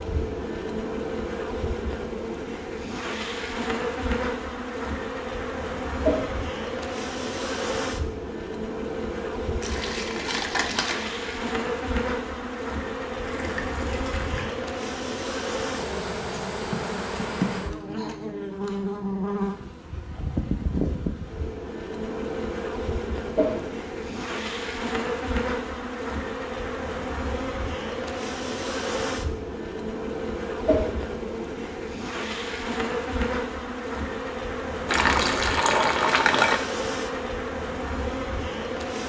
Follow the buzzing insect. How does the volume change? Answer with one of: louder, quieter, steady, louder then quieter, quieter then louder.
steady.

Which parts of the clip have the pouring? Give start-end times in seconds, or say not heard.
9.6-11.1, 13.2-14.6, 34.9-36.6.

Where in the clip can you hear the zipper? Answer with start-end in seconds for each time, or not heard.
not heard.